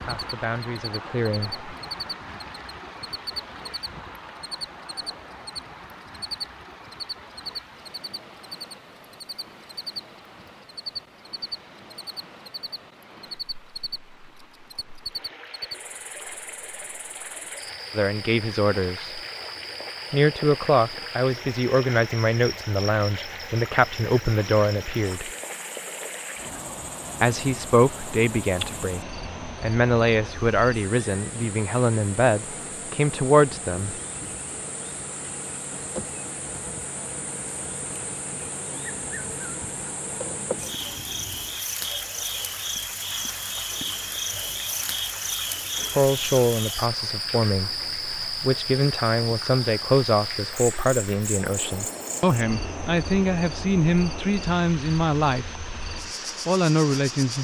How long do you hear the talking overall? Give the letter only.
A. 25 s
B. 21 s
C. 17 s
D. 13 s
A.